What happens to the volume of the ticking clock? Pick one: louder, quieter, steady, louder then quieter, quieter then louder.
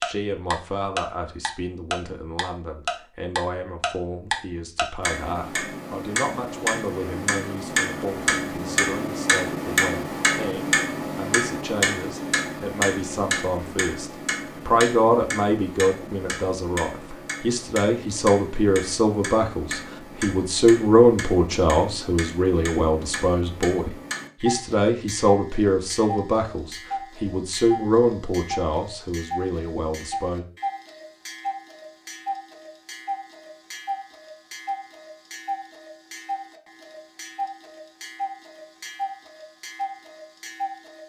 quieter.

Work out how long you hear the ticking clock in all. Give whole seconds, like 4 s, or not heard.
41 s.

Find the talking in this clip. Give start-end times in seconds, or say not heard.
0.0-30.4.